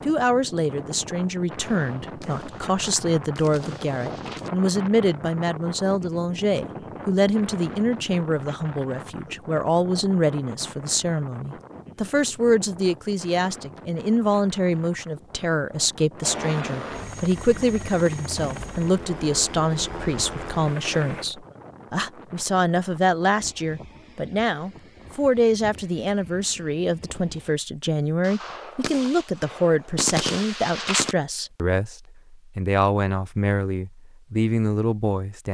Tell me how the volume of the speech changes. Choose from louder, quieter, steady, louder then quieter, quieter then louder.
steady.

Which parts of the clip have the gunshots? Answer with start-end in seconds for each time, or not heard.
1.6-4.5, 28.2-31.1.